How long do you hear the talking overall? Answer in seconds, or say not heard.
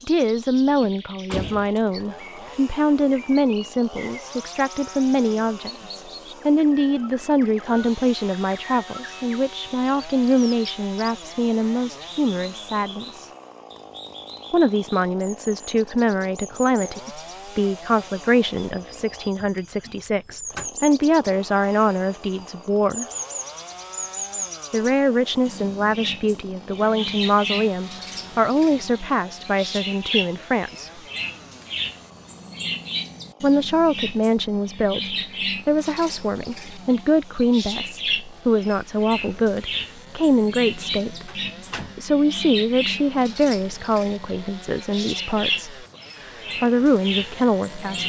43 s.